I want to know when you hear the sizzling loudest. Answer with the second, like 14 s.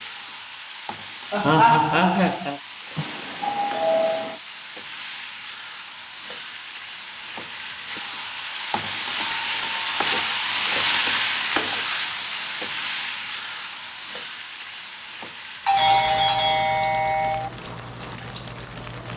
11 s.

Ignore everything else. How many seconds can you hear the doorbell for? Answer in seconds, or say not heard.
4 s.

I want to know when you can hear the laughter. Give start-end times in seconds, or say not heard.
1.3-2.6.